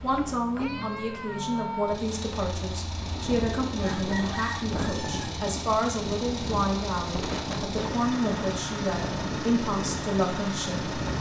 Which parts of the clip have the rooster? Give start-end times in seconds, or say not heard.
3.8-5.4.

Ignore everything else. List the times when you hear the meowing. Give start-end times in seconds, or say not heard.
0.1-1.9.